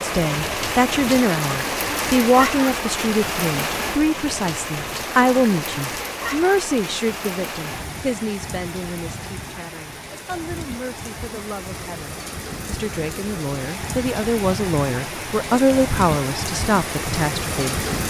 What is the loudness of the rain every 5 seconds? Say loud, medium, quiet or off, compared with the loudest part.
loud, medium, medium, loud.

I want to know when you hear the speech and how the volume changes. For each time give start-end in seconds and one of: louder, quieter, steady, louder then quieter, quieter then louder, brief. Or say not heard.
0.0-17.9 quieter then louder.